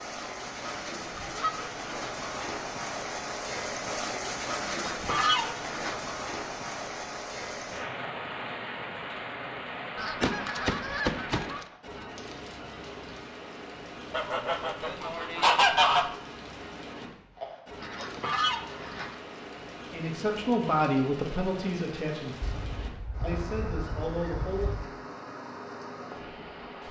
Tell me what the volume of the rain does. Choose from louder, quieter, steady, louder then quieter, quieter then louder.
quieter.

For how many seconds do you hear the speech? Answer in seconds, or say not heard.
5 s.